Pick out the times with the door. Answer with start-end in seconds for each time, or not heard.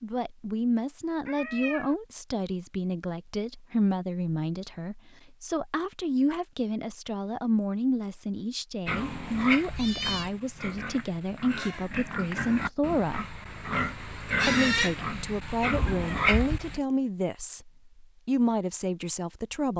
not heard.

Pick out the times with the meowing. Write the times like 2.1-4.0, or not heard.
1.2-1.9, 9.7-10.3, 15.7-16.6.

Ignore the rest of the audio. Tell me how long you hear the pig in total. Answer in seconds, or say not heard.
8 s.